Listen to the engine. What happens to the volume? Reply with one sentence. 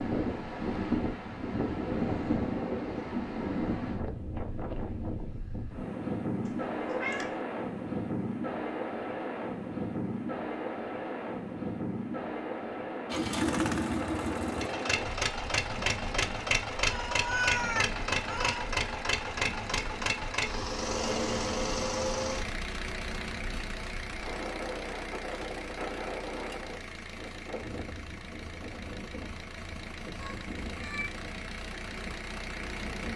The volume of the engine goes down.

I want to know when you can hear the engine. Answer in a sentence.
The engine can be heard from 13.1 to 33.1 s.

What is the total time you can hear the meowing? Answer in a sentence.
You can hear the meowing for 4 seconds altogether.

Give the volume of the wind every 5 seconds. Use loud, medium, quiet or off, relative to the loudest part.
loud, loud, loud, quiet, medium, medium, quiet.